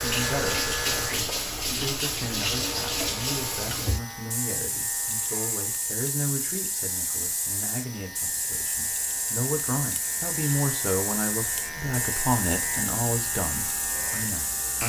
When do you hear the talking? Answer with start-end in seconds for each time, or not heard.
0.0-14.8.